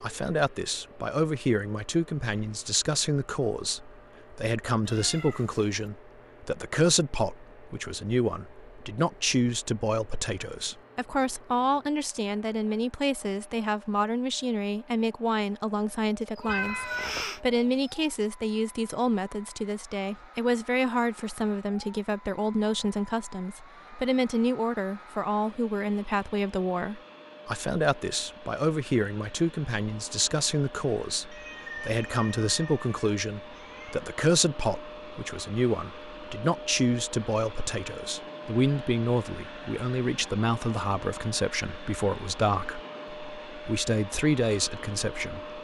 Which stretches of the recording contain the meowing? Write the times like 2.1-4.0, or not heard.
4.8-5.7, 16.4-18.0, 31.3-34.0.